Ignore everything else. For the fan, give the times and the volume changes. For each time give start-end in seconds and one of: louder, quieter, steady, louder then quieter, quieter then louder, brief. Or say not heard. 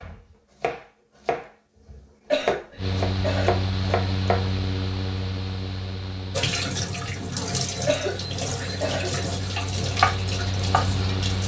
2.8-11.4 quieter then louder.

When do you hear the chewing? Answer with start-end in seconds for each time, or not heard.
not heard.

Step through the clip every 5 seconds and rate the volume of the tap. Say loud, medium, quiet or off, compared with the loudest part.
off, loud, medium.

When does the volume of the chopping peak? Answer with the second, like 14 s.
10 s.